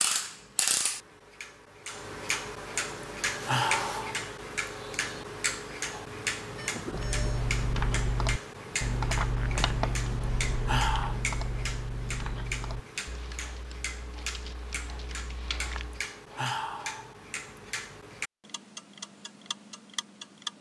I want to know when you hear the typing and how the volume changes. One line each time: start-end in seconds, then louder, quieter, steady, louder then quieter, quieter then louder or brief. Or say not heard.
6.9-16.1 quieter.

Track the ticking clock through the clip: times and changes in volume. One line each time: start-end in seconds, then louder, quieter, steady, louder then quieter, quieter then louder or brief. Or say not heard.
0.0-20.5 quieter.